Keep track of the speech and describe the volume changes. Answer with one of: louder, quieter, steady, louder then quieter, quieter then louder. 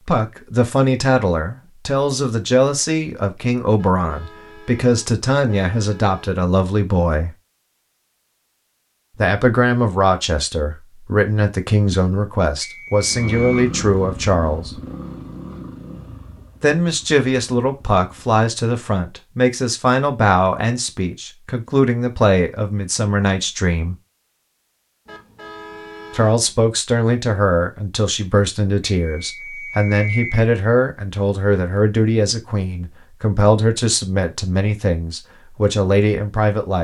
steady.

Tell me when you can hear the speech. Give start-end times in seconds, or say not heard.
0.1-7.3, 9.2-14.8, 16.6-23.9, 26.1-36.7.